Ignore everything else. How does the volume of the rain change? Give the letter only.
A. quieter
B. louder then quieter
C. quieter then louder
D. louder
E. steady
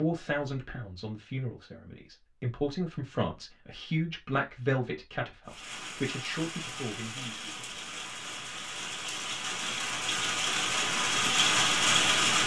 D.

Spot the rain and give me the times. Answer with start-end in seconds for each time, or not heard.
5.5-12.4.